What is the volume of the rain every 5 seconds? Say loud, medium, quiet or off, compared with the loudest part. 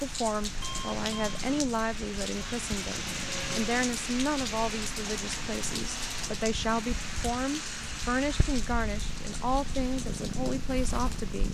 loud, loud, medium.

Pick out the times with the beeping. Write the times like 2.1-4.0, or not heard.
0.6-1.4.